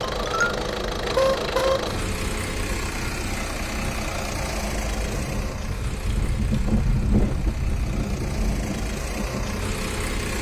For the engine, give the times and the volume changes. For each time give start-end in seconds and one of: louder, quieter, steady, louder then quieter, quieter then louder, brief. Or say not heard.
0.0-10.3 quieter then louder.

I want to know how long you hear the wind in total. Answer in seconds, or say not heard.
10 s.